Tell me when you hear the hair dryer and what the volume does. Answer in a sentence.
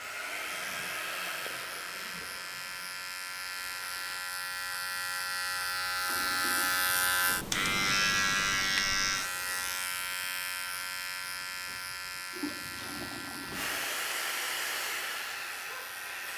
You can hear the hair dryer from 0.0 to 4.2 s, getting quieter; and briefly from 13.5 to 16.3 s.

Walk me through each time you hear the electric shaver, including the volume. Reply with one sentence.
The electric shaver can be heard from 0.0 to 16.3 s, getting louder then quieter.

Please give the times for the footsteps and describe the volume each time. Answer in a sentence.
You can't hear the footsteps here.